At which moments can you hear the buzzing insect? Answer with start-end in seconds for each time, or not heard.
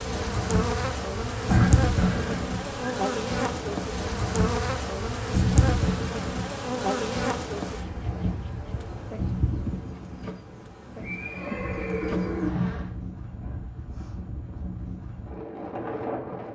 0.0-12.9.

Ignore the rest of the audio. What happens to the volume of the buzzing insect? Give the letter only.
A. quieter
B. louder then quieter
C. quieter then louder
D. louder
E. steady
A.